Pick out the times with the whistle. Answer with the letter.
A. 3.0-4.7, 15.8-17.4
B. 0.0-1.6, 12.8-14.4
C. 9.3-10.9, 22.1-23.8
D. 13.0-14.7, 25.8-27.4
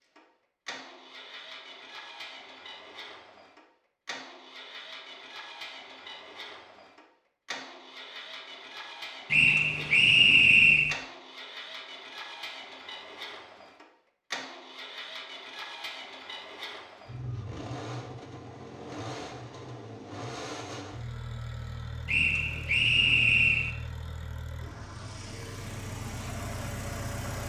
C.